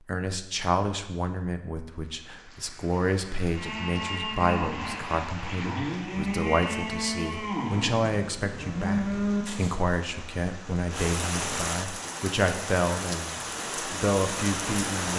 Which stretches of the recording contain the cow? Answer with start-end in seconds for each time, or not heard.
3.5-9.8.